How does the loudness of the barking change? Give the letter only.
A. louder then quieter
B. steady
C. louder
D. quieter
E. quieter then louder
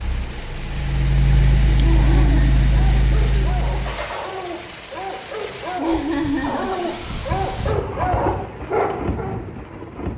C.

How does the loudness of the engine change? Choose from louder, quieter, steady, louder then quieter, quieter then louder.
louder then quieter.